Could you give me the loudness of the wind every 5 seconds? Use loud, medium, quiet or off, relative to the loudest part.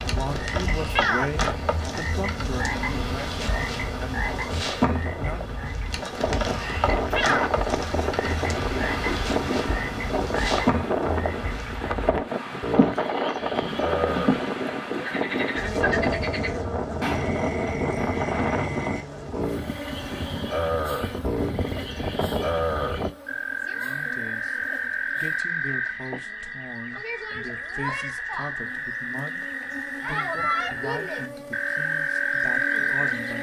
medium, loud, loud, loud, medium, off, off.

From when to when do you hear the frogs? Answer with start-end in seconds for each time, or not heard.
0.1-33.3.